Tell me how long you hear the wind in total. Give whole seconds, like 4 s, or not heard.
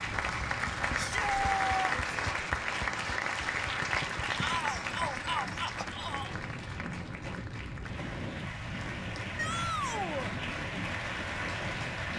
12 s.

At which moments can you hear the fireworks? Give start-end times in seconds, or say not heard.
not heard.